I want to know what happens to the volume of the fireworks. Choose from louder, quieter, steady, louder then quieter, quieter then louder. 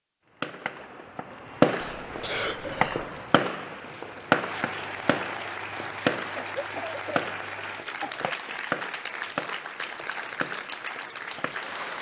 quieter.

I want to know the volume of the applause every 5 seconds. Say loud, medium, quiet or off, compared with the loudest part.
medium, loud, loud.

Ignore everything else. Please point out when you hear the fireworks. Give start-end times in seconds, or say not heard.
0.4-11.7.